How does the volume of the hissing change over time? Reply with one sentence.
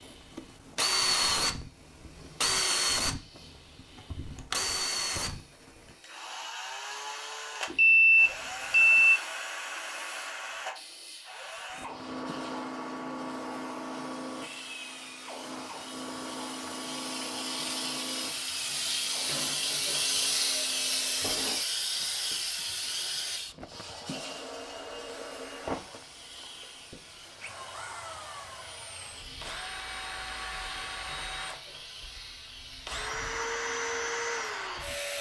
The volume of the hissing goes up, then down.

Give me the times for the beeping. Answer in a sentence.
You can hear the beeping from 7.7 to 9.2 s.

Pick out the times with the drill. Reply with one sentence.
The drill can be heard from 0.0 to 35.1 s.